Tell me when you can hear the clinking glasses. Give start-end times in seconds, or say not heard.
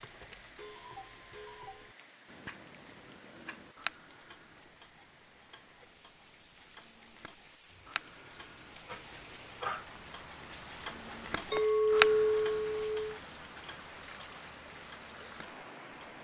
11.5-12.9.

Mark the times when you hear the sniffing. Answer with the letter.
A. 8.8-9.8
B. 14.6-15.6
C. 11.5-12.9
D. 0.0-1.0
A.